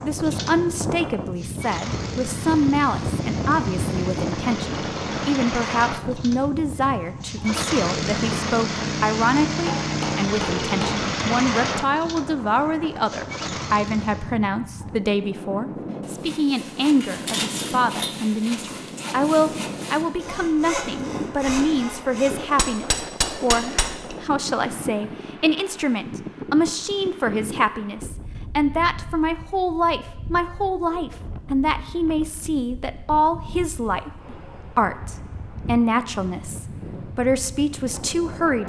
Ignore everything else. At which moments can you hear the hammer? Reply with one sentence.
You can hear the hammer from 9.7 to 11.0 s and from 22.6 to 24.4 s.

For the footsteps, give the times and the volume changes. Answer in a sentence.
The footsteps can't be heard in this clip.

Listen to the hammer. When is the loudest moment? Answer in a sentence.
The volume of the hammer peaks at 23 seconds.